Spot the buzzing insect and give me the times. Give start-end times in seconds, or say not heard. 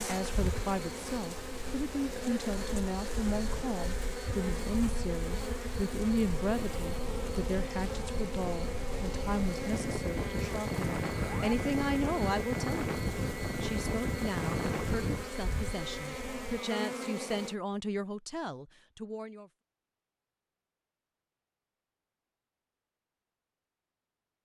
0.0-17.6.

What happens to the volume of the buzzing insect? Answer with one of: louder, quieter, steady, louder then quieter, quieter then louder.
steady.